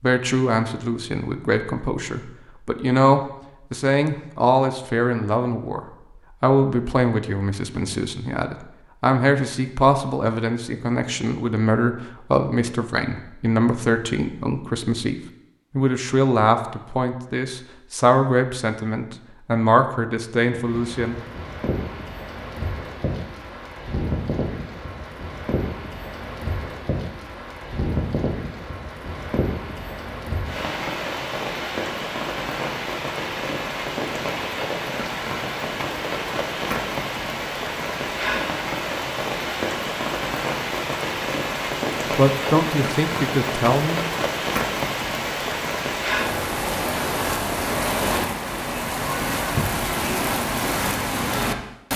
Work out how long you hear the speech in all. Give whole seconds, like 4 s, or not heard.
22 s.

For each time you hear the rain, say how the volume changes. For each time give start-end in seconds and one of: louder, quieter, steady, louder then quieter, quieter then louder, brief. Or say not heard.
20.5-51.9 louder.